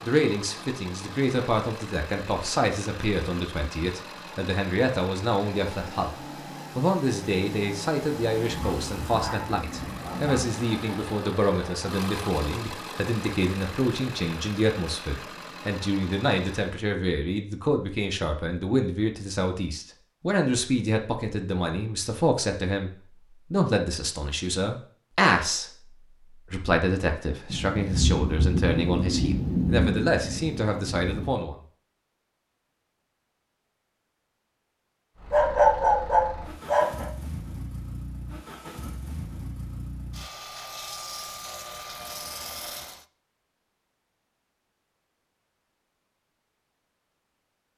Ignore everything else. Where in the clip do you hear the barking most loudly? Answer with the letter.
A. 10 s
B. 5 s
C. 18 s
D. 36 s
D.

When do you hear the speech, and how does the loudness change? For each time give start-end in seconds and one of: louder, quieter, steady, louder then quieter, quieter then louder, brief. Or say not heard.
0.0-31.6 steady.